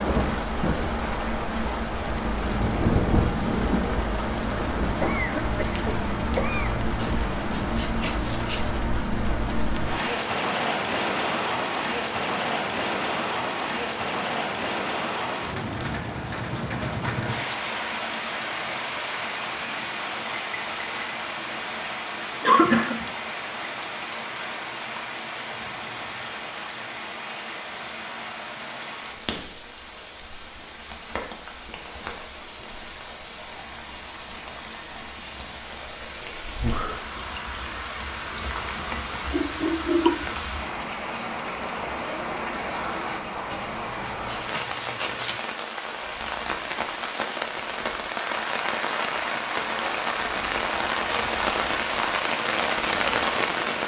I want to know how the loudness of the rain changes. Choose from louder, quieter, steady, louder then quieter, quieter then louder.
quieter then louder.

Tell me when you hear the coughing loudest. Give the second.
23 s.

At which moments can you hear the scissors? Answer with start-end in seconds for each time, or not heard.
7.0-8.7, 25.5-26.4, 43.5-45.5.